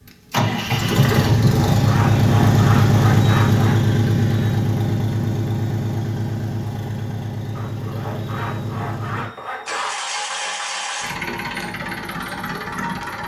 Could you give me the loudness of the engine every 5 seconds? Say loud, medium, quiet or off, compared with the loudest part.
loud, medium, medium.